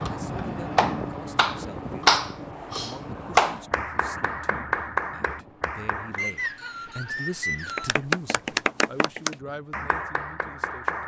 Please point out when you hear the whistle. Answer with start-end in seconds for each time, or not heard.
6.2-8.0.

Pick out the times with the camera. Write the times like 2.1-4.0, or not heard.
not heard.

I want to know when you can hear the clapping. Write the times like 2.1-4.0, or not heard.
0.0-6.2, 7.7-11.0.